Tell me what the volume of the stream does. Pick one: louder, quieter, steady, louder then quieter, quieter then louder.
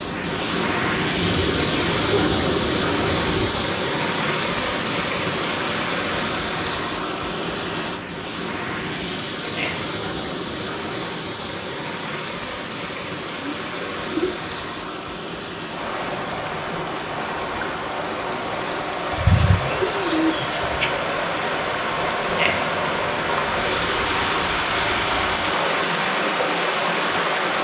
quieter then louder.